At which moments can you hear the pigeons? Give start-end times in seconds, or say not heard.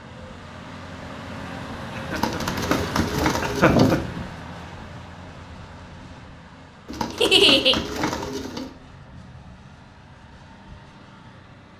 2.1-4.0, 6.8-8.7.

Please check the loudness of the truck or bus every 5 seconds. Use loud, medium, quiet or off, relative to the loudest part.
loud, medium, quiet.